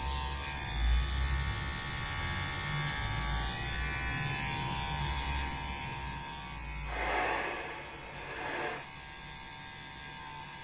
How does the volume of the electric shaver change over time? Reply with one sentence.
The loudness of the electric shaver goes down.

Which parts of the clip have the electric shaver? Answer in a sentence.
You can hear the electric shaver from 0.0 to 10.5 s.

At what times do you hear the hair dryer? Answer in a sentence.
The hair dryer can be heard from 6.8 to 8.8 s.